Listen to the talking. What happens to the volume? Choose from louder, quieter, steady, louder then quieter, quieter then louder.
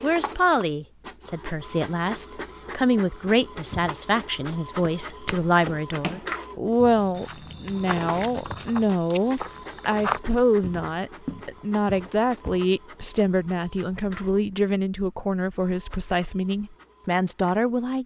steady.